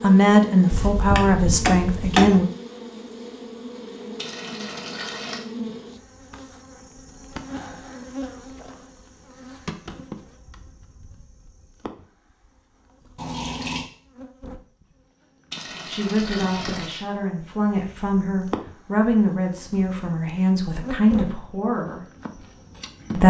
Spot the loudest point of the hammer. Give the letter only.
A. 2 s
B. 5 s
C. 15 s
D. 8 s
A.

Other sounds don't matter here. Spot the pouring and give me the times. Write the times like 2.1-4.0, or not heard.
4.2-5.5, 13.2-13.8, 15.5-17.1.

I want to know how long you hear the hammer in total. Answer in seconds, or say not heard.
2 s.